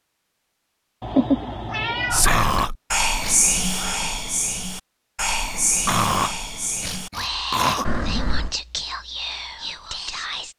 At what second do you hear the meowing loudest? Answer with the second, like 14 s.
1 s.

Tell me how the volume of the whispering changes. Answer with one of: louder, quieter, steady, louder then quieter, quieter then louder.
quieter.